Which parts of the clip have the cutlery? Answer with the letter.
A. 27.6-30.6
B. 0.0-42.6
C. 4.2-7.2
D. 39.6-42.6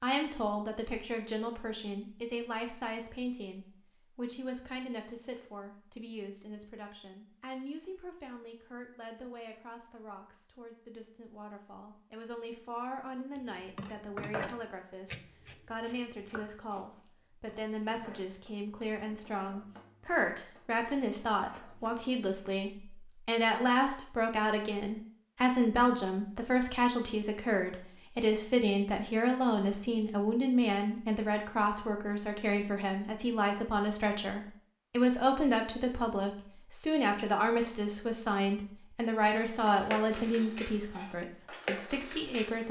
D.